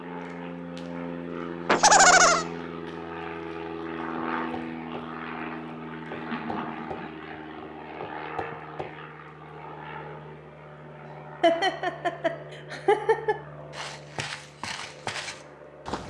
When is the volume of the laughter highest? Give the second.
2 s.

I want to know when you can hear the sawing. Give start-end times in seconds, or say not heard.
not heard.